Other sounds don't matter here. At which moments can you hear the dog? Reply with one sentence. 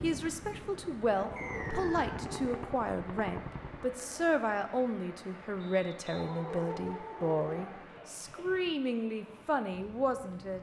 You can hear the dog from 1.1 to 2.9 s and from 6.1 to 7.8 s.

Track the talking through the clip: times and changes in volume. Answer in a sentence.
You can hear the talking from 0.0 to 10.5 s, at a steady volume.